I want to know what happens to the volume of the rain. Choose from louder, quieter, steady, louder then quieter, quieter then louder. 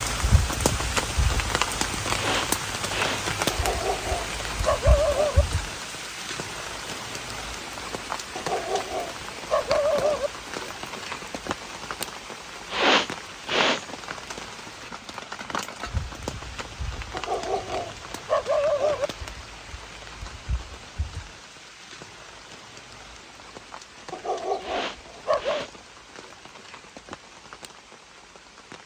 quieter.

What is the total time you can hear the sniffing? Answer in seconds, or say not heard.
3 s.